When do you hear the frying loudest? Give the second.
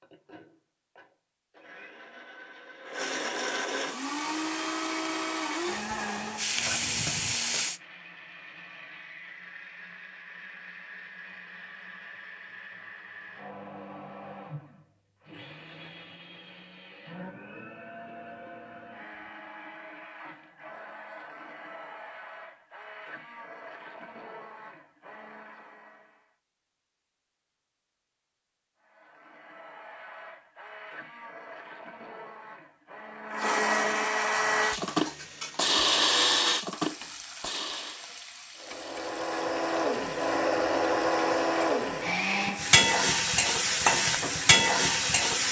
44 s.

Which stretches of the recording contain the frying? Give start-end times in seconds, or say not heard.
3.9-7.8, 34.3-45.4.